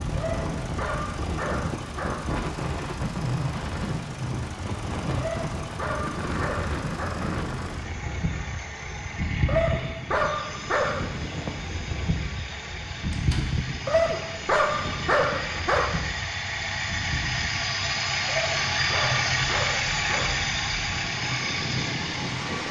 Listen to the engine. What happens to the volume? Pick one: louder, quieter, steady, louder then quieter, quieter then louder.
louder.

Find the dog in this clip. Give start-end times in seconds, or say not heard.
0.1-2.1, 5.2-7.1, 9.4-11.1, 13.8-15.9, 18.2-20.3.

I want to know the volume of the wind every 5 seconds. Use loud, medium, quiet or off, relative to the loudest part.
loud, loud, loud, medium, loud.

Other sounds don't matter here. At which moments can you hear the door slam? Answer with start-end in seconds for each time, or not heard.
13.1-13.6.